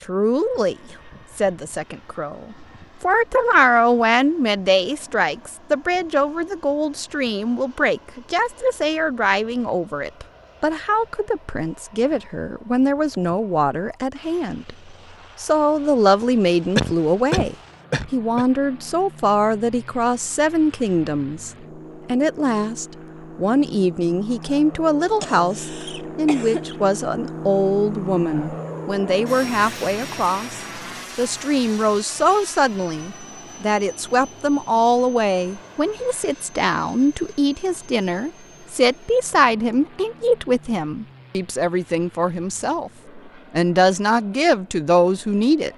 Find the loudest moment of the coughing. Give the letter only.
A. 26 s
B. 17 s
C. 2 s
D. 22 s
B.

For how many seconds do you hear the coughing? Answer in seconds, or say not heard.
3 s.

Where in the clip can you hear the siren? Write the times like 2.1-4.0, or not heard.
not heard.